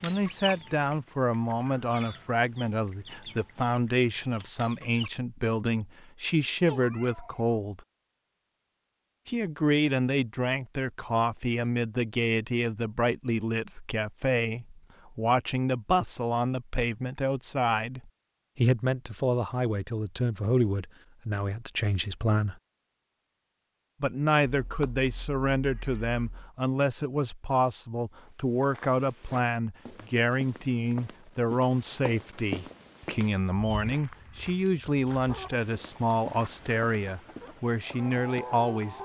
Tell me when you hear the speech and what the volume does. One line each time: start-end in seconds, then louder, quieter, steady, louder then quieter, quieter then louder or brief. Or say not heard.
0.0-7.8 steady
9.2-22.6 steady
24.0-39.0 steady.